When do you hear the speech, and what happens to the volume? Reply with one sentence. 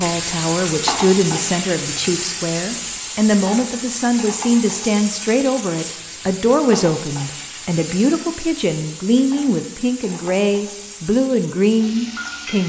The speech can be heard from 0.0 to 12.6 s, at a steady volume.